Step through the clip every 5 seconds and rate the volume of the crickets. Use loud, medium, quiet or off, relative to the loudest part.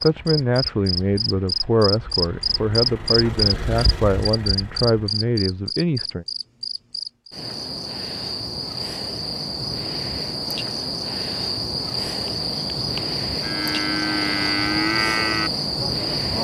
loud, medium, loud, loud.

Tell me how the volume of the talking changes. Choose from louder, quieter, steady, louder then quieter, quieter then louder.
steady.